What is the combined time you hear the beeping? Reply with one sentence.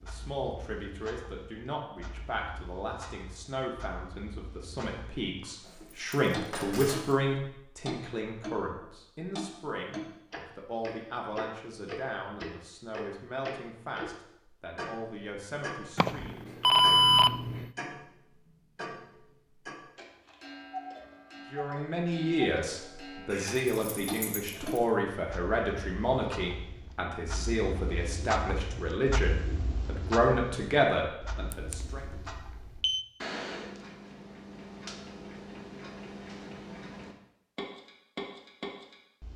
You can hear the beeping for 3 seconds altogether.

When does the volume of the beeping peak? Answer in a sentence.
The loudest moment of the beeping is at 17 seconds.